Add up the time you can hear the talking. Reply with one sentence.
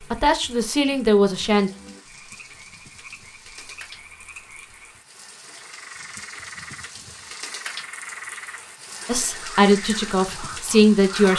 You can hear the talking for 4 seconds altogether.